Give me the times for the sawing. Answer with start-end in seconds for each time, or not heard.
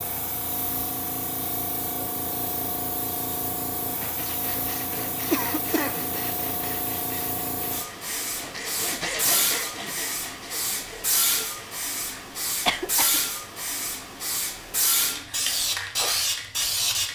4.0-11.8.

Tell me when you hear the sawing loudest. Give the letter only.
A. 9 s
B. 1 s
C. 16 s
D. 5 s
A.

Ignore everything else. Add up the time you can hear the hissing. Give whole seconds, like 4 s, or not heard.
17 s.